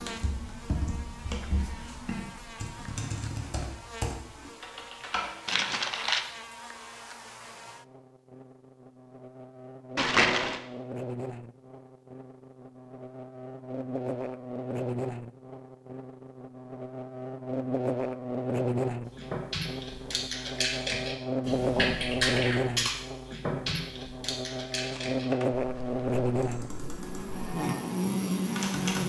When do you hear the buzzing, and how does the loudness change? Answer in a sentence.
You can hear the buzzing from 0.0 to 29.0 s, getting louder.